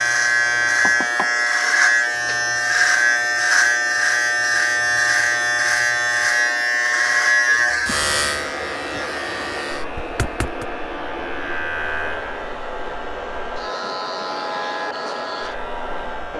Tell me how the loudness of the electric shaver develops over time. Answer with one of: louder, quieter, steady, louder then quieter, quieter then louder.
quieter.